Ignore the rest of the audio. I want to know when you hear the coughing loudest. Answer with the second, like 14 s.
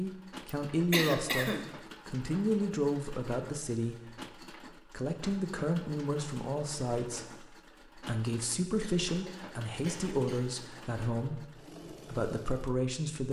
1 s.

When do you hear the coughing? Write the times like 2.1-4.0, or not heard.
0.5-1.7, 8.8-10.7.